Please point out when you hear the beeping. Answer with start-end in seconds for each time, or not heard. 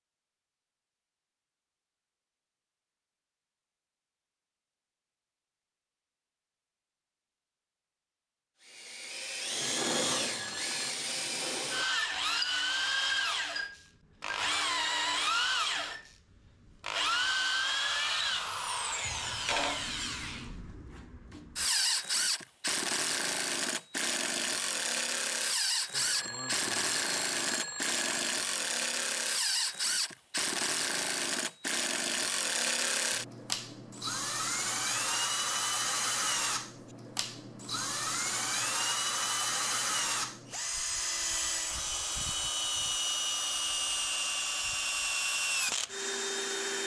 9.6-10.9, 25.9-28.2.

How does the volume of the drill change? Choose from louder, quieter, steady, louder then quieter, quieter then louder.
steady.